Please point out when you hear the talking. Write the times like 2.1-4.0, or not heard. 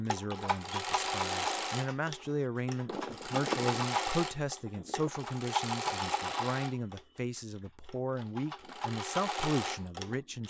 0.0-10.4.